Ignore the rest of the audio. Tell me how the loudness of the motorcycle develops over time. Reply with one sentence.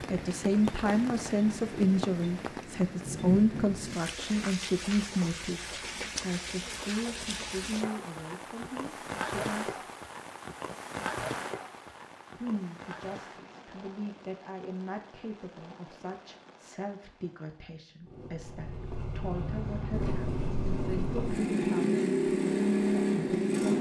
The volume of the motorcycle goes up.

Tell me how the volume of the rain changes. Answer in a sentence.
The volume of the rain goes down.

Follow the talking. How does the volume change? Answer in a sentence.
The volume of the talking goes down.